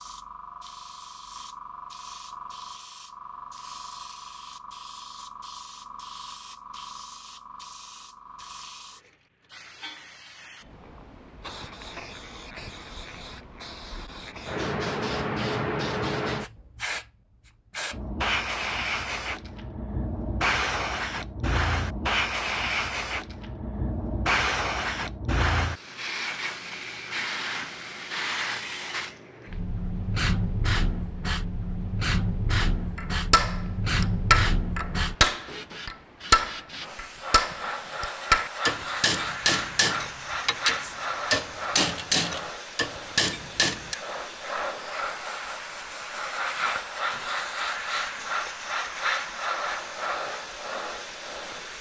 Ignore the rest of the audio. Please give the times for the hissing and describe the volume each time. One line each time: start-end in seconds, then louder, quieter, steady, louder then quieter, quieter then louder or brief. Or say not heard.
0.0-51.7 louder.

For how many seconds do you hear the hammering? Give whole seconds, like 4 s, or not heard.
11 s.